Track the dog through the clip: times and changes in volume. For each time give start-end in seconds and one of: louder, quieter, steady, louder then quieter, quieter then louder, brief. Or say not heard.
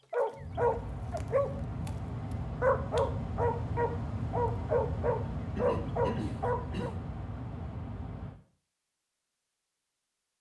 0.1-1.9 brief
2.6-6.9 steady.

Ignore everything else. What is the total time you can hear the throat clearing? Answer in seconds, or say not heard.
2 s.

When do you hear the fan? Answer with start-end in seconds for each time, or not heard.
0.0-8.3.